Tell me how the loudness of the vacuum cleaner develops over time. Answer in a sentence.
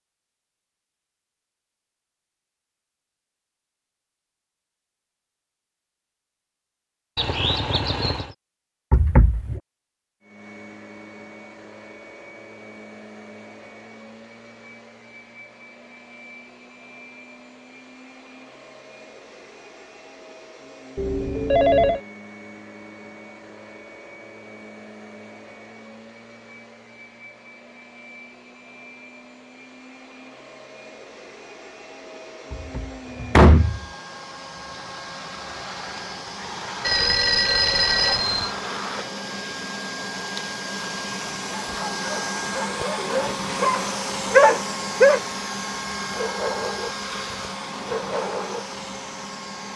The volume of the vacuum cleaner goes up.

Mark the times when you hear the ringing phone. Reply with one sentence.
You can hear the ringing phone from 7.2 to 8.3 s, from 20.9 to 22.0 s and from 36.8 to 38.5 s.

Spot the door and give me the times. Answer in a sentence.
You can hear the door from 8.9 to 9.6 s and from 32.5 to 33.8 s.